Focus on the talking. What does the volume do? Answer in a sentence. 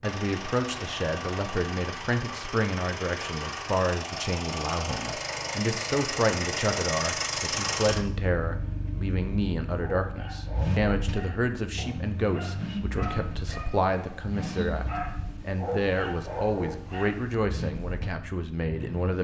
The volume of the talking stays about the same.